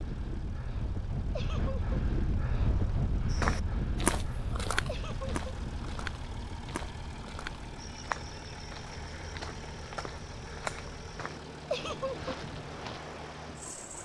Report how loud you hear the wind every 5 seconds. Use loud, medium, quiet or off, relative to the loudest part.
loud, medium, medium.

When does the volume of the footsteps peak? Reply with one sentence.
The volume of the footsteps peaks at 4 seconds.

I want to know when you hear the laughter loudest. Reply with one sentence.
The loudest moment of the laughter is at 12 seconds.